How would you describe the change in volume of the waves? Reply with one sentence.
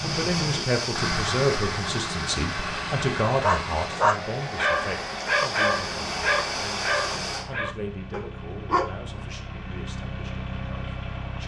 The loudness of the waves goes down, then up.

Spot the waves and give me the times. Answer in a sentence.
The waves can be heard from 0.0 to 7.5 s.